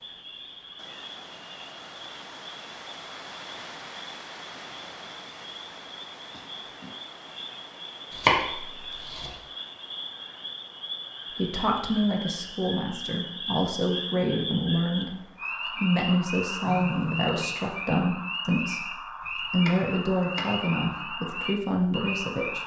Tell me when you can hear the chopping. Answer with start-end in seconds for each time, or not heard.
8.1-9.3, 19.2-20.6.